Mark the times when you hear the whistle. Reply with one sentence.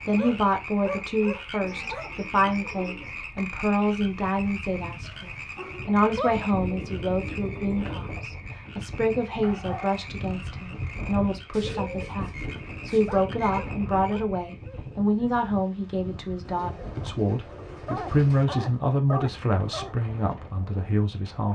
The whistle can't be heard in this clip.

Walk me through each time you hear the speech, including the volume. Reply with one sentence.
The speech can be heard from 0.1 to 21.5 s, at a steady volume.